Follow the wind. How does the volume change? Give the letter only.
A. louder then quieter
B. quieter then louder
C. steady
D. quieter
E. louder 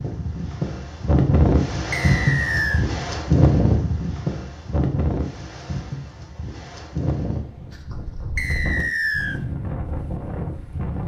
D.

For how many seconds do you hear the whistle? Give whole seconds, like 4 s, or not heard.
2 s.